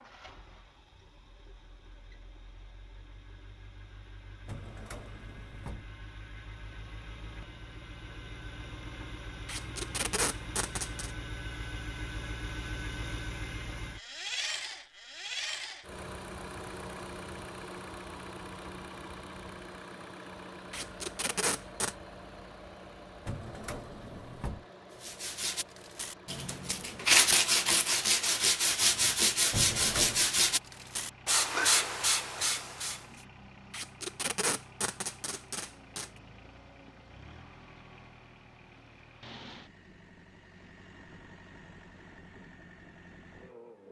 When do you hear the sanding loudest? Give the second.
27 s.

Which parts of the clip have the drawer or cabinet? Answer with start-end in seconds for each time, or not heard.
4.5-5.9, 23.2-24.6, 29.5-30.3.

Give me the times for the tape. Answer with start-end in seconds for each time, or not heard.
9.4-11.1, 20.7-21.9, 33.7-36.1.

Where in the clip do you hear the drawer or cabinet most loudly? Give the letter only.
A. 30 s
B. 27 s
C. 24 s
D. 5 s
A.